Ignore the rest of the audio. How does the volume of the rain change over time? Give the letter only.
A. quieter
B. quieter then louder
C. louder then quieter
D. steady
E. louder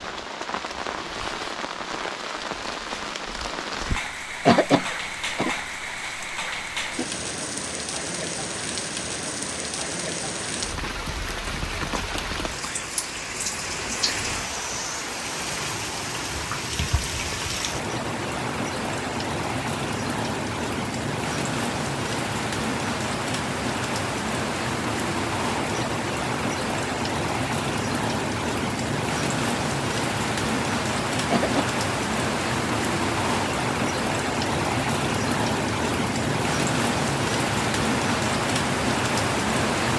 E.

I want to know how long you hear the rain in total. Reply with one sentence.
The rain can be heard for 40 seconds in total.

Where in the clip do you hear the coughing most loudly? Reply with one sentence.
The loudest moment of the coughing is at 5 seconds.